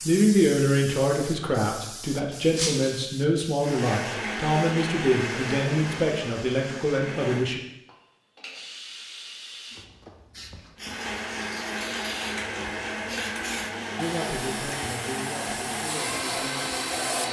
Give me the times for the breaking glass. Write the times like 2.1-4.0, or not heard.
2.5-3.0.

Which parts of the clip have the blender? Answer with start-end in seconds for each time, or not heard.
3.6-7.6, 10.8-17.2.